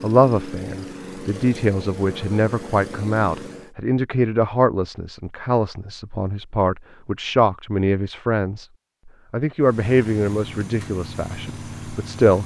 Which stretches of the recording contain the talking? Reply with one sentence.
The talking can be heard from 0.0 to 8.7 s and from 9.3 to 12.4 s.